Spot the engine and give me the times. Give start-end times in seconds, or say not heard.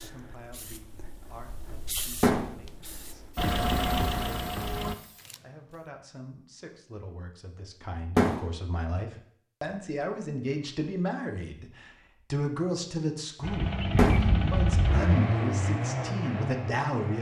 3.4-5.0, 13.4-17.1.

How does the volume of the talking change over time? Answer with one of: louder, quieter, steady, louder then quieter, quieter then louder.
louder.